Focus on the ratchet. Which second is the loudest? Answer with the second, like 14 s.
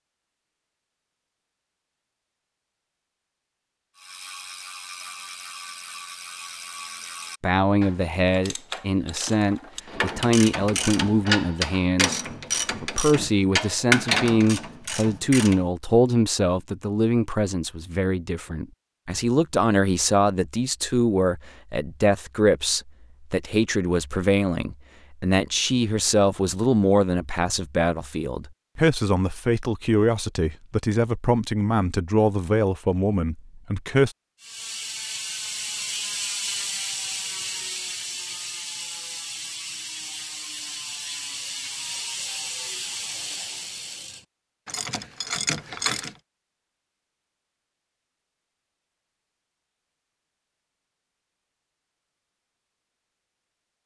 14 s.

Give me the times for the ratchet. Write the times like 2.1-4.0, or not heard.
4.0-15.7, 34.4-46.1.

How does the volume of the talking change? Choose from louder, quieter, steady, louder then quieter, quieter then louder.
steady.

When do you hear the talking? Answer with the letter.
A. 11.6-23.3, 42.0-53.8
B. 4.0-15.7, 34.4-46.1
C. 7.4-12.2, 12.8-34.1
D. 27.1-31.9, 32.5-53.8
C.